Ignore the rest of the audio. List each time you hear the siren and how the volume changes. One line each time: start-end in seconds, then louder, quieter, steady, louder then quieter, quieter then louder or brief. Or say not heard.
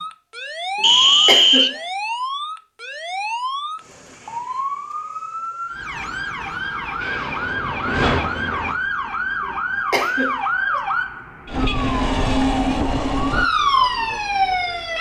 0.0-14.9 louder.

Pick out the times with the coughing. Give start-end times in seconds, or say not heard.
0.8-1.8, 9.4-10.8.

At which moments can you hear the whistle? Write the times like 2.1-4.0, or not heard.
0.8-1.8.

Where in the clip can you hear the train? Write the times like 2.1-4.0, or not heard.
7.0-8.8.